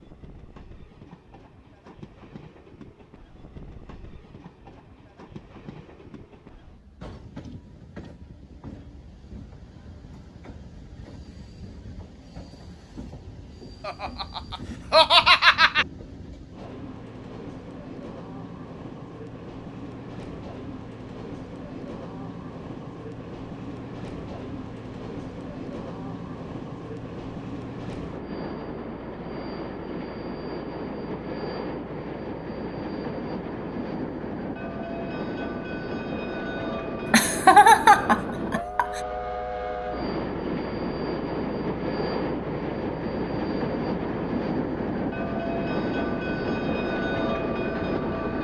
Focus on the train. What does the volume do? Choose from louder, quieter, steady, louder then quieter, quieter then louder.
louder.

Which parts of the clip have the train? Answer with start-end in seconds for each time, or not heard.
0.0-48.3.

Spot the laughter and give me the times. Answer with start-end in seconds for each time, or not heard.
13.8-15.8, 37.0-39.0.